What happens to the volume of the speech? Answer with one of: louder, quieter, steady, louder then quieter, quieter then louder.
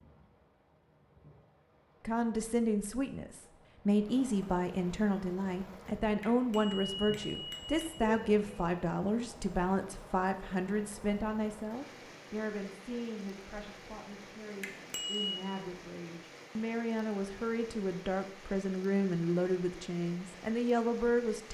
quieter then louder.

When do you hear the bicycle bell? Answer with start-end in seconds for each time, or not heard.
6.2-8.4, 14.6-15.4.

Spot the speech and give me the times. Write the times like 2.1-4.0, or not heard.
2.0-21.5.